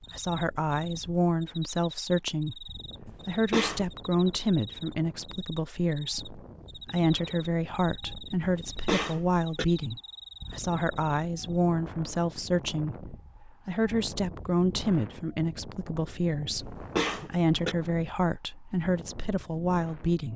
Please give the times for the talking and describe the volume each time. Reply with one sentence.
The talking can be heard from 0.1 to 20.3 s, at a steady volume.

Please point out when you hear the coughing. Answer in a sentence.
The coughing can be heard from 3.0 to 3.9 s, from 8.4 to 9.7 s and from 16.5 to 17.8 s.